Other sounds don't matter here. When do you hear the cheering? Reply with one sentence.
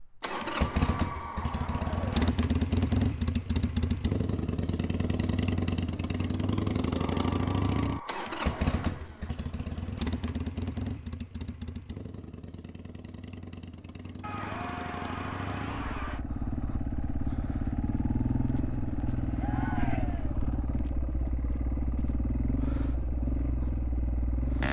The cheering can be heard from 0.3 to 2.3 s, from 7.0 to 8.8 s, from 14.2 to 16.2 s and from 19.4 to 20.4 s.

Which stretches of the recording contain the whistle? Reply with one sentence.
You can't hear the whistle here.